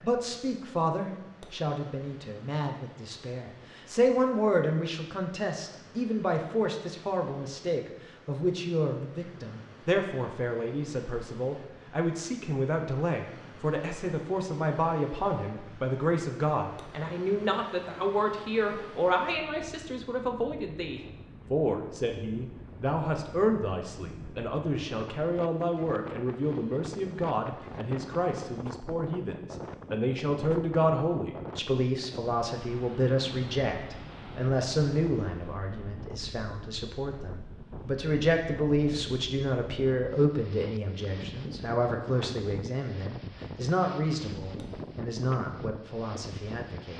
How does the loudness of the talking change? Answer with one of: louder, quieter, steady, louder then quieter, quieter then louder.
steady.